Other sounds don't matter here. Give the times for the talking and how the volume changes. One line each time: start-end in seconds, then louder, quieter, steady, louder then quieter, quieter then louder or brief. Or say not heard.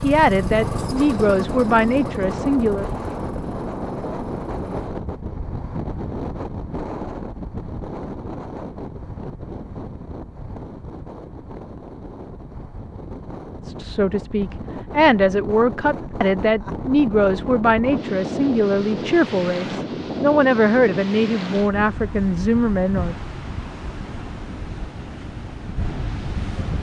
0.0-2.9 brief
13.7-23.1 steady.